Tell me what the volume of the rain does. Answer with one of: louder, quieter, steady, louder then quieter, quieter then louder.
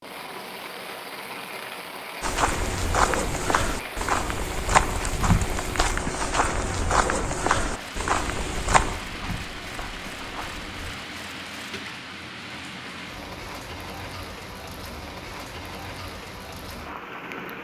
steady.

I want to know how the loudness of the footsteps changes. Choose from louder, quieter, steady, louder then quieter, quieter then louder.
quieter.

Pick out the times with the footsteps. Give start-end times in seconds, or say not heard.
2.2-10.9.